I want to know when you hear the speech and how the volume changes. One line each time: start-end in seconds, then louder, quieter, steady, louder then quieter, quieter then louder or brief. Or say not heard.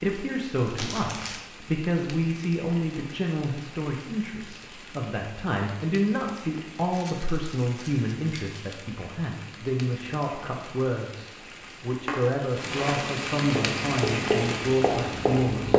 0.0-15.7 steady.